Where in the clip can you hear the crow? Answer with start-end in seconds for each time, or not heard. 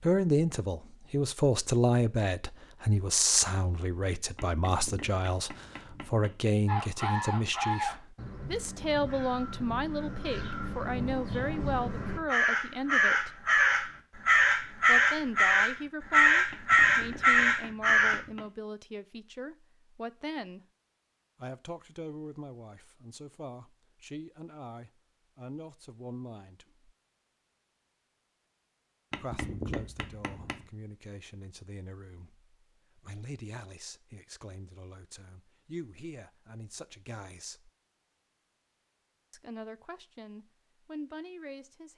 6.7-18.2.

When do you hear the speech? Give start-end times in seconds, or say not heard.
0.0-13.4, 14.8-20.6, 21.4-26.9, 29.1-37.7, 39.3-41.9.